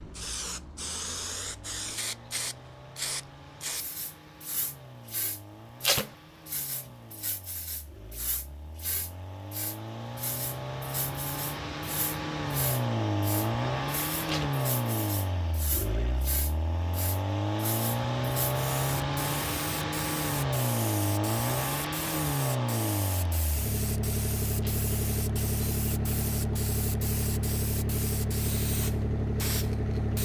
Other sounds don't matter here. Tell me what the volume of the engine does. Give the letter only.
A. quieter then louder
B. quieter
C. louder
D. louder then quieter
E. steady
C.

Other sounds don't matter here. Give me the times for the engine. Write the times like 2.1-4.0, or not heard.
0.0-30.2.